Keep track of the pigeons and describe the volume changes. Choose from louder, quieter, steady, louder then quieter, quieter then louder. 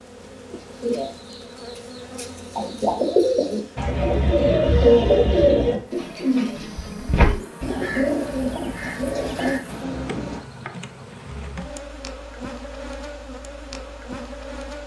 louder then quieter.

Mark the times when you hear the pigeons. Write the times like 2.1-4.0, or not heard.
0.8-10.4.